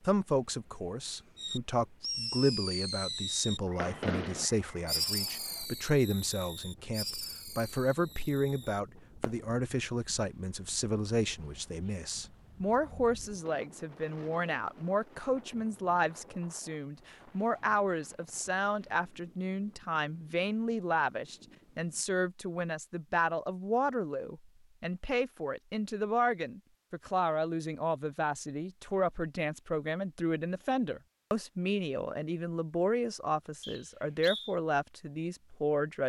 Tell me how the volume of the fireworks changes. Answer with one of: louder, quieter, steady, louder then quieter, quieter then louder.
quieter.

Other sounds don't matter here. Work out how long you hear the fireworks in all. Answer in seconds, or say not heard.
8 s.